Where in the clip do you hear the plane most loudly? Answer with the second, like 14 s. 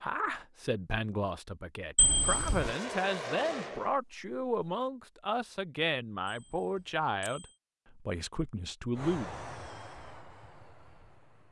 3 s.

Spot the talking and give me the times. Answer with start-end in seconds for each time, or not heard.
0.0-9.3.